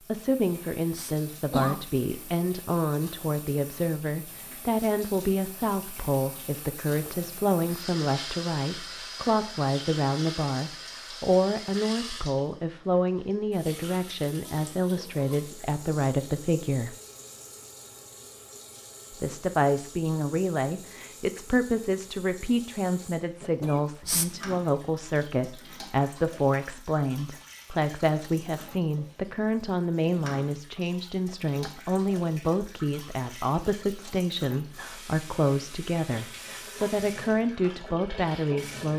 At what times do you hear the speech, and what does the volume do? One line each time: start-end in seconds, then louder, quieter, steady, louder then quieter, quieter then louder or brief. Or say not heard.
0.1-16.9 steady
19.1-38.9 steady.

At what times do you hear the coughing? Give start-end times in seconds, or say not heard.
0.3-1.8, 23.4-24.3.